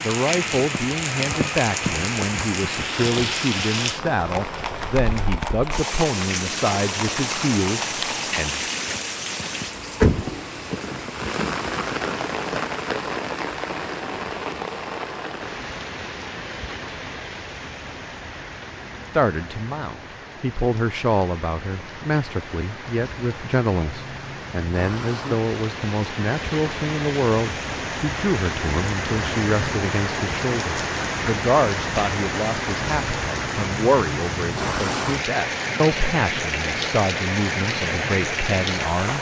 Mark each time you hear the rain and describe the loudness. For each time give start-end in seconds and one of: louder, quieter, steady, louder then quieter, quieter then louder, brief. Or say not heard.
0.0-39.1 quieter then louder.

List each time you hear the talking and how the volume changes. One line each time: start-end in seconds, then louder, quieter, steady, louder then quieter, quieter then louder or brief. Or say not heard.
0.0-8.6 steady
19.1-39.1 steady.